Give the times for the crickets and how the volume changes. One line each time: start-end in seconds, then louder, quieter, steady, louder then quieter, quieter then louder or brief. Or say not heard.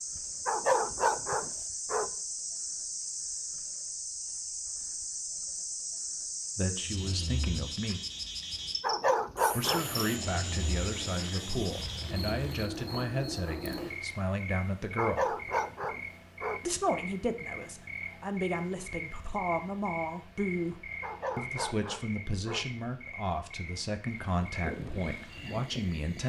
0.0-26.2 quieter.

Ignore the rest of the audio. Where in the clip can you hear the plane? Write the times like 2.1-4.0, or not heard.
9.6-12.7, 24.2-26.2.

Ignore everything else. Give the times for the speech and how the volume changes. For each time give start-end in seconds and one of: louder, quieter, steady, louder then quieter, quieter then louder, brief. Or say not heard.
6.5-8.0 brief
9.5-15.3 steady
16.6-26.2 steady.